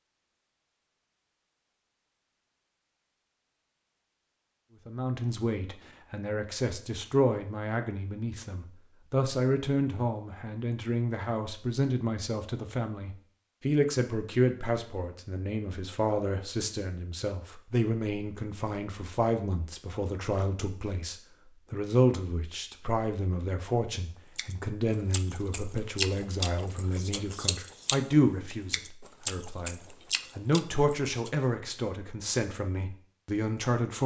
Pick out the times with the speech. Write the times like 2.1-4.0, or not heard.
4.8-34.0.